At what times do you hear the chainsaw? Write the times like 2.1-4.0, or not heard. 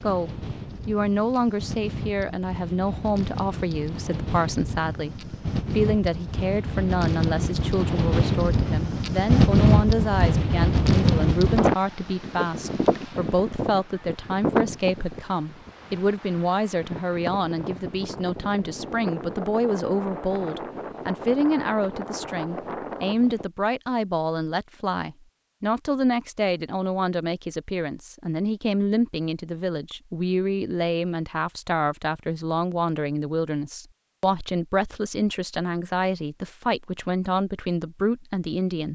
not heard.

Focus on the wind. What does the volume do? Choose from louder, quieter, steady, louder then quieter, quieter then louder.
louder then quieter.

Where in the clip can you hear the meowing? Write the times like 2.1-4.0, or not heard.
not heard.